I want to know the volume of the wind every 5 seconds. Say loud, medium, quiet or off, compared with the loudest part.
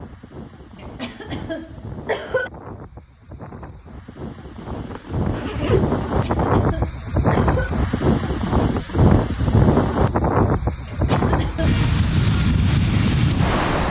quiet, loud, loud.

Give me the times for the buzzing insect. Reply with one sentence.
You can't hear the buzzing insect here.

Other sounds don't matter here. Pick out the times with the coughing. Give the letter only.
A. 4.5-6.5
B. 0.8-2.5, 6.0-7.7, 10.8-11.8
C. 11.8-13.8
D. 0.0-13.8
B.